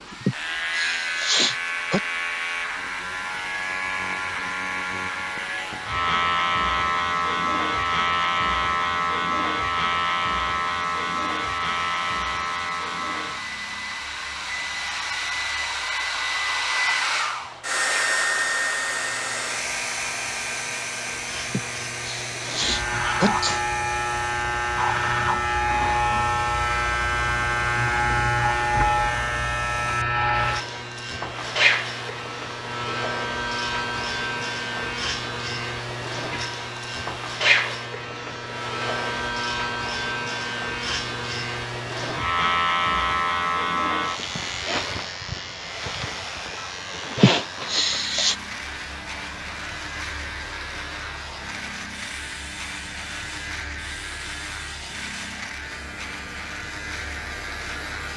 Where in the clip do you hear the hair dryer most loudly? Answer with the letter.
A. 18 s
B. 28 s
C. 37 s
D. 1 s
A.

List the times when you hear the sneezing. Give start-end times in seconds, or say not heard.
0.2-2.0, 21.5-23.6, 47.1-48.4.